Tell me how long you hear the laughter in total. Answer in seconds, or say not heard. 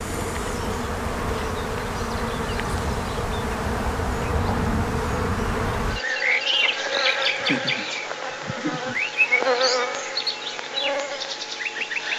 2 s.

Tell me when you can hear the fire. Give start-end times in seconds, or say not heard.
not heard.